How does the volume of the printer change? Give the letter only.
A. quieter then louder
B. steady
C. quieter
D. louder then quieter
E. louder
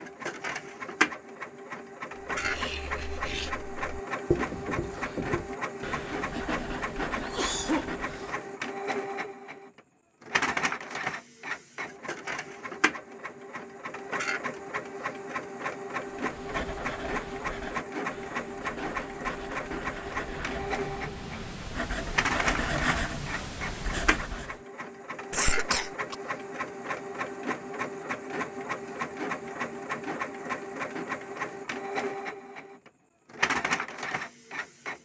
B.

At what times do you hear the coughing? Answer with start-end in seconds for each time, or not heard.
7.2-8.3, 25.3-26.1.